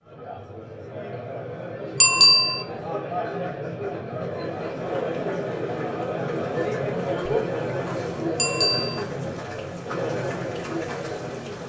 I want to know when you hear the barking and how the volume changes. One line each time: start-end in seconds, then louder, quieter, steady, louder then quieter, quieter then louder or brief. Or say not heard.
not heard.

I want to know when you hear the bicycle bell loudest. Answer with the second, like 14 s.
2 s.